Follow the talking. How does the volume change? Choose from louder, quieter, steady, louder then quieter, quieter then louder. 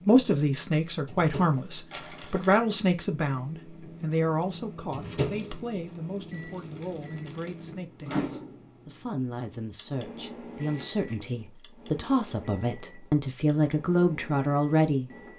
quieter then louder.